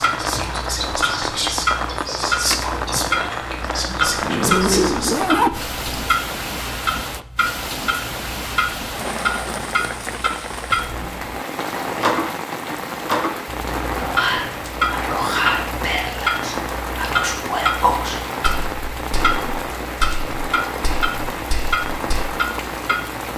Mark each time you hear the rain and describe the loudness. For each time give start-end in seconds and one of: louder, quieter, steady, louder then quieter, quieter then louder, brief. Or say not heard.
0.0-23.3 steady.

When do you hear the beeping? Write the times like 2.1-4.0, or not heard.
not heard.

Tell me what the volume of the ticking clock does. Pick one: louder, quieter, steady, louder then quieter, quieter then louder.
steady.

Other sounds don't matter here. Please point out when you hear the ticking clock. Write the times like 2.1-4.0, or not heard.
0.0-23.3.